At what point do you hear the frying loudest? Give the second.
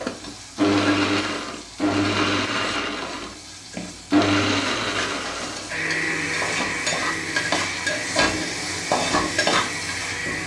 9 s.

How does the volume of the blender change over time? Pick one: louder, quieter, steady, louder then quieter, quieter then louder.
quieter.